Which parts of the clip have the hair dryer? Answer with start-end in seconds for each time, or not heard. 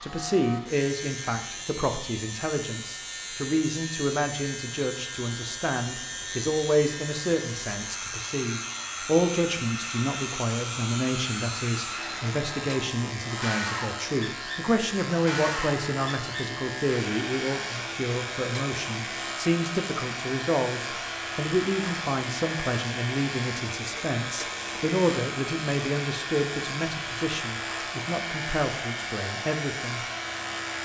0.0-30.7.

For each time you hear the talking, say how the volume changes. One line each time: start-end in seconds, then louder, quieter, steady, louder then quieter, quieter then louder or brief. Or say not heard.
0.0-30.0 steady.